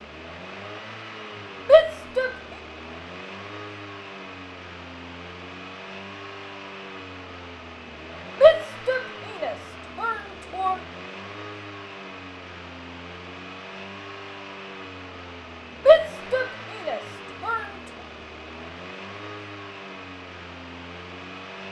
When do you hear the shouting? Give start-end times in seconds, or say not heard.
1.6-2.4, 8.4-10.8, 15.8-17.6.